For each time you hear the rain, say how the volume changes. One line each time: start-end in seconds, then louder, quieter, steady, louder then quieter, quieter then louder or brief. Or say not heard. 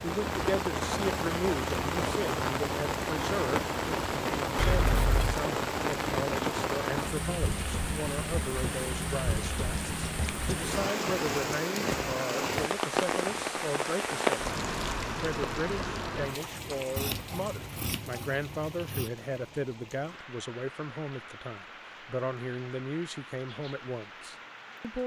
0.0-25.0 quieter.